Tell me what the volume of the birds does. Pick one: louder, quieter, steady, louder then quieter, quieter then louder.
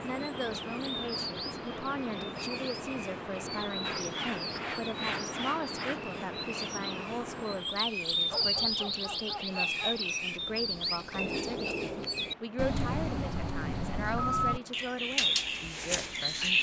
louder.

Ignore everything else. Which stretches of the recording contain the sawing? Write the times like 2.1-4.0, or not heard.
3.8-6.0, 10.8-12.2.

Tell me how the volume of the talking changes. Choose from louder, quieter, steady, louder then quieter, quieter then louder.
steady.